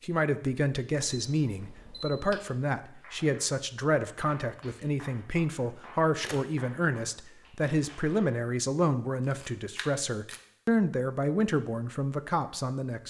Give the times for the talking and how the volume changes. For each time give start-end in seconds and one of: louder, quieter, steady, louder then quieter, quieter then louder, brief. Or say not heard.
0.0-13.0 steady.